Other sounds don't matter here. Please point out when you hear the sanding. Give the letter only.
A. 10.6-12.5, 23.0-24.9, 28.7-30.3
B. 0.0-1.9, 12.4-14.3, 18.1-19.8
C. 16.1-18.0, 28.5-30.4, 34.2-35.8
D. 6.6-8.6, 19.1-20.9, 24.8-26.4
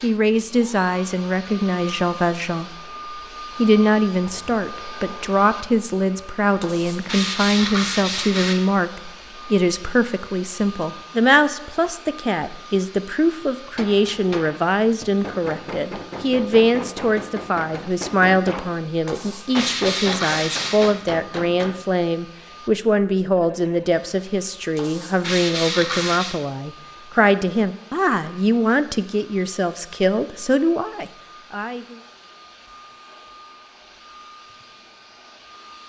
D.